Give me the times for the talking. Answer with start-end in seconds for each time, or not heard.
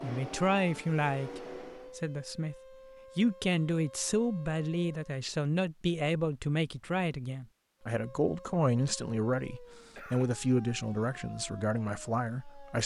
0.0-2.5, 3.1-12.8.